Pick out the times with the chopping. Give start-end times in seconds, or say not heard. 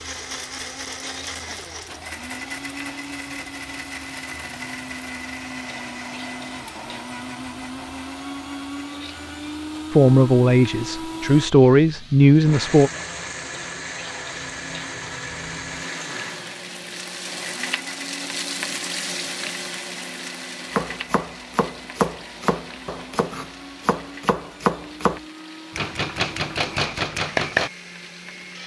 20.7-27.7.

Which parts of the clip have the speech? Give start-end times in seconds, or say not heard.
9.9-12.9.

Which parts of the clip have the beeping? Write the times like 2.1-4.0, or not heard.
not heard.